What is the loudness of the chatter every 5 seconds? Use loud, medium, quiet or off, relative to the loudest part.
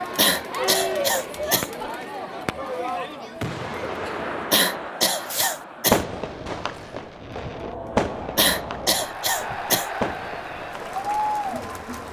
loud, medium, loud.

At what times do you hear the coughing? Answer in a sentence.
You can hear the coughing from 0.1 to 1.7 s, from 4.5 to 6.0 s and from 8.3 to 9.9 s.